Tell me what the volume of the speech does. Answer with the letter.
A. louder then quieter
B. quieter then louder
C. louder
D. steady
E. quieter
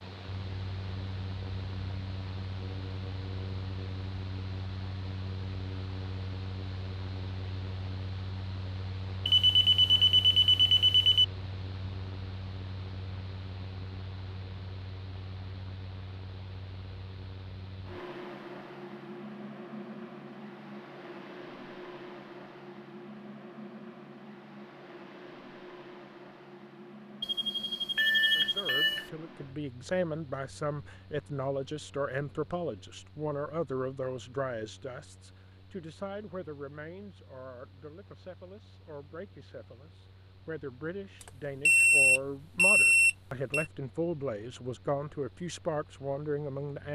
B.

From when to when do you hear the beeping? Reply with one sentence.
You can hear the beeping from 9.2 to 11.2 s, from 27.2 to 29.1 s and from 41.6 to 43.6 s.